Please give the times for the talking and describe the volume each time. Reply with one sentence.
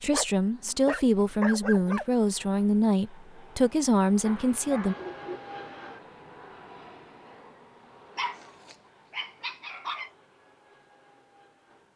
The talking can be heard from 0.0 to 5.0 s, at a steady volume.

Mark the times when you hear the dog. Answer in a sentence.
The dog can be heard from 0.1 to 2.0 s, from 4.2 to 5.4 s and from 8.2 to 10.1 s.